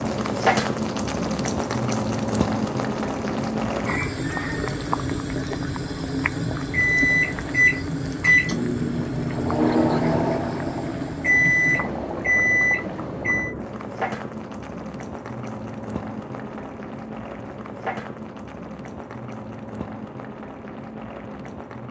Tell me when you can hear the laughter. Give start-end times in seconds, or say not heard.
not heard.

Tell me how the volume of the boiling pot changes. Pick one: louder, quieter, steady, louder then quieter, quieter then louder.
quieter.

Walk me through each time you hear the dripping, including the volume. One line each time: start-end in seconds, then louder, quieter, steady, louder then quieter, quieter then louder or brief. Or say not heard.
not heard.